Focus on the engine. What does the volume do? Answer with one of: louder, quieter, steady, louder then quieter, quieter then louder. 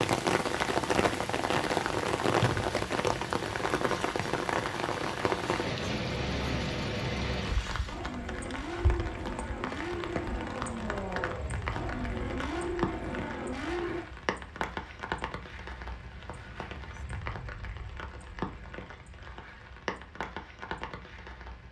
louder.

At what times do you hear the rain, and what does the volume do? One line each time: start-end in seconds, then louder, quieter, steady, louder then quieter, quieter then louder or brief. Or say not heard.
0.0-21.6 quieter.